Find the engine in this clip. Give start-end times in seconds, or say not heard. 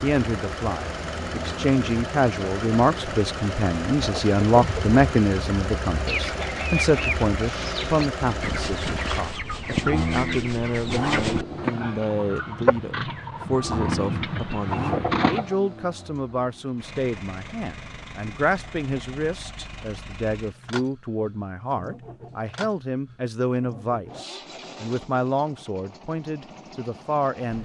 0.0-27.5.